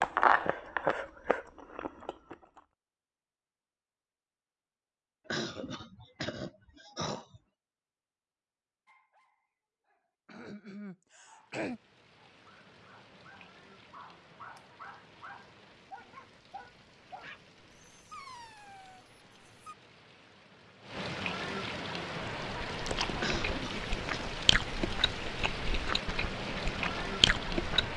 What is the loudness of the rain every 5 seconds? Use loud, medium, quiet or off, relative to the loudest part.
off, off, quiet, quiet, loud, loud.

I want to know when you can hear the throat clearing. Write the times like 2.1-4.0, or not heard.
5.2-7.4, 10.2-11.8, 23.1-24.2.